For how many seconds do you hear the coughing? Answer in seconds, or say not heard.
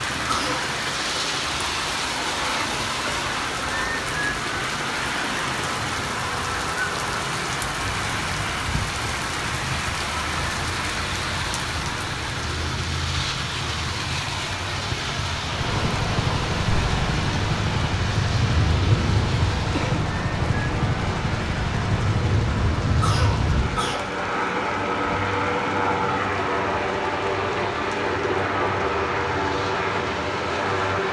2 s.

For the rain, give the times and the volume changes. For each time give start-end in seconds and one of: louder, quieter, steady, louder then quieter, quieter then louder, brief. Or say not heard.
0.0-31.0 quieter.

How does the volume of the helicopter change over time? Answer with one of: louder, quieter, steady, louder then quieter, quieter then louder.
louder.